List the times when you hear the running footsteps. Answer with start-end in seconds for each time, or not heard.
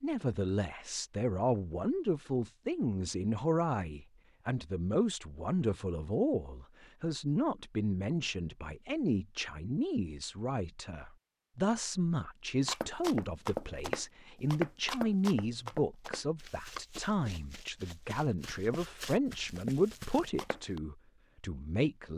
12.7-20.8.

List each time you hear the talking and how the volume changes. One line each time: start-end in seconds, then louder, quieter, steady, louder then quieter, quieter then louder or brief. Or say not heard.
0.0-22.1 steady.